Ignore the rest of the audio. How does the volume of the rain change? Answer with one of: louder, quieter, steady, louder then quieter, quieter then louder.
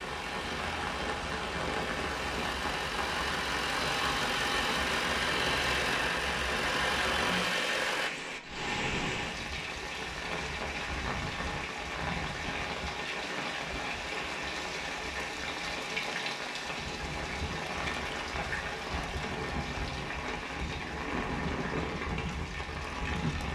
steady.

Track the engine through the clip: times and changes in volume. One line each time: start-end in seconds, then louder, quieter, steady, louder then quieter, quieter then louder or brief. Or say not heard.
0.0-8.1 louder.